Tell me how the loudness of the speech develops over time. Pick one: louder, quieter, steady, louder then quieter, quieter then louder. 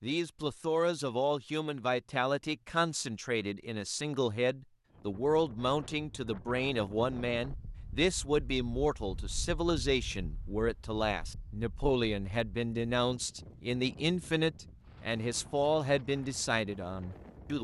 steady.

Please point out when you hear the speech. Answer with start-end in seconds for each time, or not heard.
0.0-17.5.